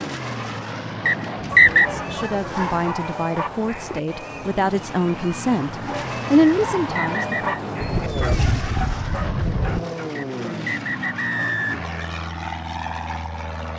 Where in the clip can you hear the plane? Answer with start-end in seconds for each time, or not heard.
0.0-13.7.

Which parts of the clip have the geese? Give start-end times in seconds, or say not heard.
1.4-2.9, 7.8-9.8.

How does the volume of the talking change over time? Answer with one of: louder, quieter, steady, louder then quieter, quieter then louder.
louder.